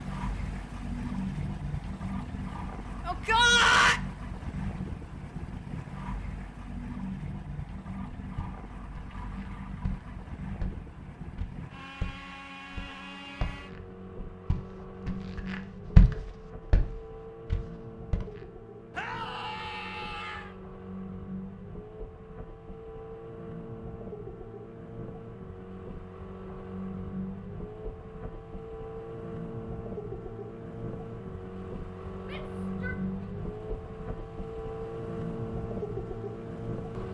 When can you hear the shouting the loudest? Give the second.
4 s.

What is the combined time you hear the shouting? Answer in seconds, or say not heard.
3 s.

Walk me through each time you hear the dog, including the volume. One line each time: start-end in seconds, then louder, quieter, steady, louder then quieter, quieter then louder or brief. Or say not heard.
not heard.